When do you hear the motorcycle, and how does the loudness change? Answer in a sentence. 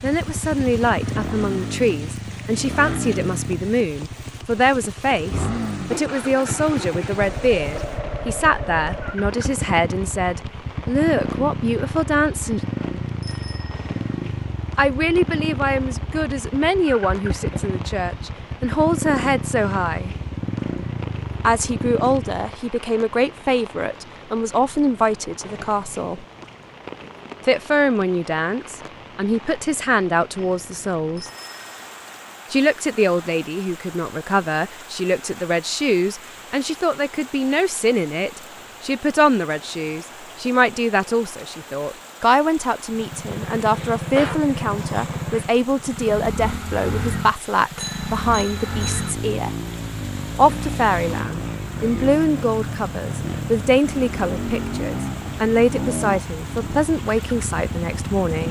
The motorcycle can be heard from 0.0 to 22.6 s, at a steady volume; and from 42.9 to 58.4 s, at a steady volume.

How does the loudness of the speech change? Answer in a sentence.
The loudness of the speech stays about the same.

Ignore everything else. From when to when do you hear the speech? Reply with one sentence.
The speech can be heard from 0.0 to 12.6 s, from 14.8 to 20.1 s, from 21.4 to 26.2 s, from 27.4 to 31.3 s, from 32.5 to 49.5 s and from 50.4 to 58.4 s.